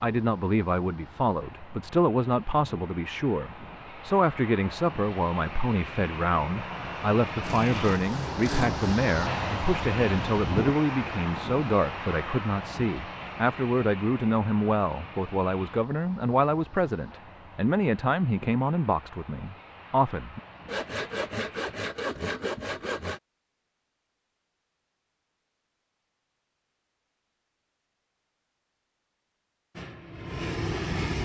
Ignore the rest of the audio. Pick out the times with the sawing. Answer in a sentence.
The sawing can be heard from 7.4 to 8.9 s and from 20.6 to 23.2 s.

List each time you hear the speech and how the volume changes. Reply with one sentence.
You can hear the speech from 0.0 to 20.4 s, at a steady volume.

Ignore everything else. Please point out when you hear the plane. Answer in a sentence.
The plane can be heard from 0.0 to 21.8 s and from 29.8 to 31.2 s.